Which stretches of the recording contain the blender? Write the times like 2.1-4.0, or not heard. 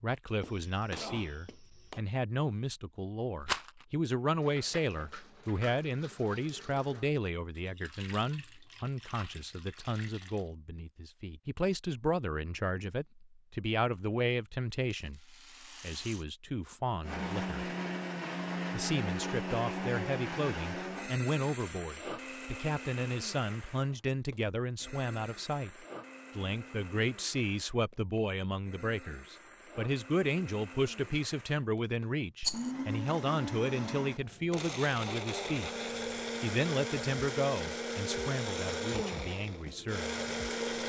17.0-40.8.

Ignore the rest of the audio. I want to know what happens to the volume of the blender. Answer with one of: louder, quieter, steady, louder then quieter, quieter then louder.
quieter then louder.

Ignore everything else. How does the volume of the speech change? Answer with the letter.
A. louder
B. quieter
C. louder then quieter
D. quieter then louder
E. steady
E.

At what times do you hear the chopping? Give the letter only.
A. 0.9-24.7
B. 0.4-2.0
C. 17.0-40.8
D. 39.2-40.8
B.